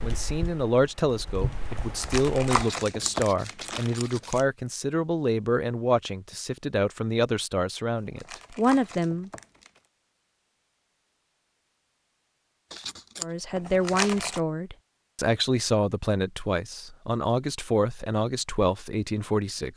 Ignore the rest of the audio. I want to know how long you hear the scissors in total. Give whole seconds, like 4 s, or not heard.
2 s.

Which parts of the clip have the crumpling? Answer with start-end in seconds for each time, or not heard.
1.7-4.5, 8.0-9.8, 13.6-14.4.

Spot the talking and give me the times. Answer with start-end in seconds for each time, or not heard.
0.0-9.3, 13.2-19.7.